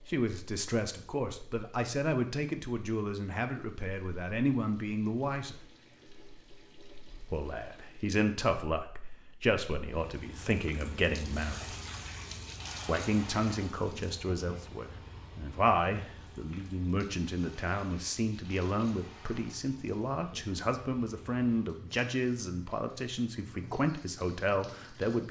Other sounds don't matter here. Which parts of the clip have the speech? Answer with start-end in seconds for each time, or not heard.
0.1-5.6, 7.3-11.8, 12.8-25.2.